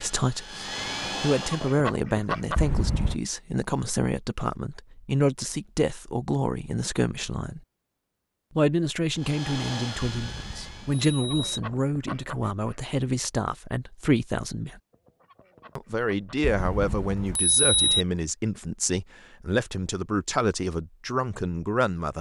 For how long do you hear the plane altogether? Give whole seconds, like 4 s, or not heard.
4 s.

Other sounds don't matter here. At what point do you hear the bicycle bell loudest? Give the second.
18 s.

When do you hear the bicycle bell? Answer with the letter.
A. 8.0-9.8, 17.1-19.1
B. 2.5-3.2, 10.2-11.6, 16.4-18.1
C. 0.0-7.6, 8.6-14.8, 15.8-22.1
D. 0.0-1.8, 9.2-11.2
B.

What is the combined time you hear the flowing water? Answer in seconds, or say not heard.
not heard.